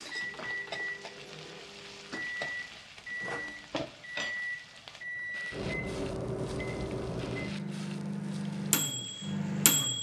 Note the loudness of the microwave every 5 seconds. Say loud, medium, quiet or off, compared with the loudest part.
medium, loud.